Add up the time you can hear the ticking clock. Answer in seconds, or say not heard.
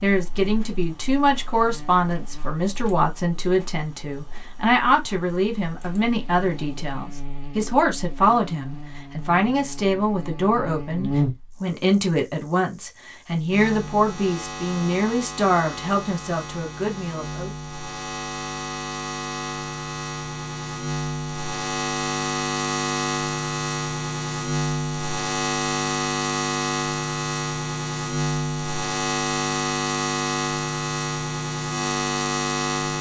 not heard.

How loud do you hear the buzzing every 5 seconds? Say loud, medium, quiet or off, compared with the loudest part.
quiet, quiet, medium, medium, loud, loud, loud.